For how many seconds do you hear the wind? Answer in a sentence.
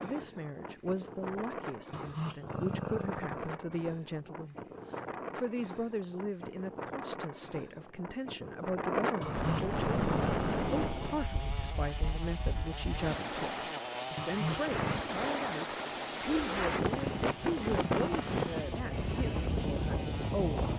The wind can be heard for 21 seconds in total.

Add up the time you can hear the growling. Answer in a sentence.
You can hear the growling for 4 seconds altogether.